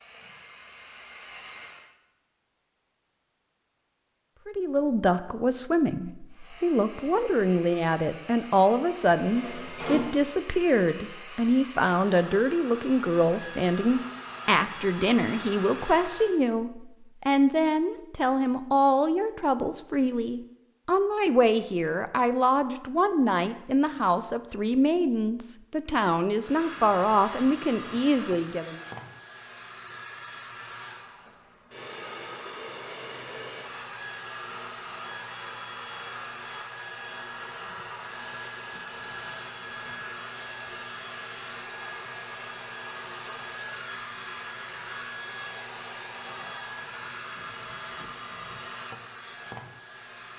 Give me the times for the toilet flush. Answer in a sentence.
You can hear the toilet flush from 9.1 to 10.1 s.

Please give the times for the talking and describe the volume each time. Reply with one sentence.
The talking can be heard from 4.5 to 28.8 s, at a steady volume.